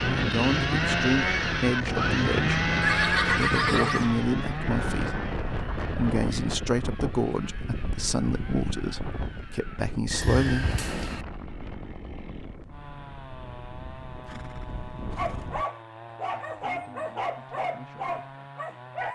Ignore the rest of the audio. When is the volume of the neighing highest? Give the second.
3 s.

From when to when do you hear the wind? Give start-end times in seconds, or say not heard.
0.0-15.7.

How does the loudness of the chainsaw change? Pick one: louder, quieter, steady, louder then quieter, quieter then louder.
quieter.